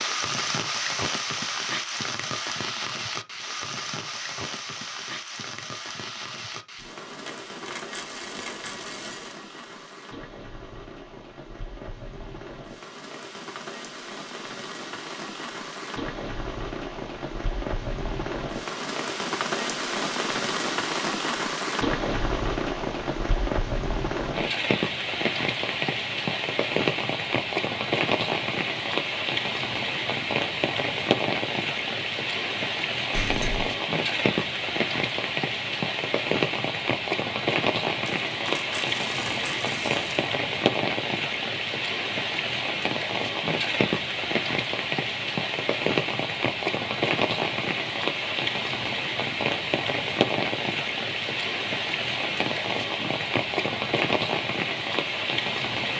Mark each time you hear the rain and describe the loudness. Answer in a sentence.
The rain can be heard from 0.0 to 55.9 s, getting louder.